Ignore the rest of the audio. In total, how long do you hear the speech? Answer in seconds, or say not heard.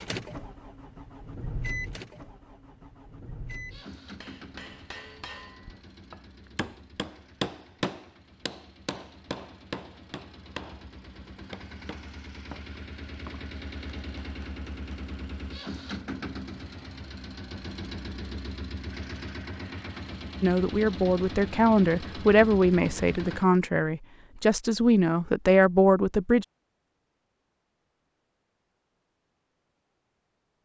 6 s.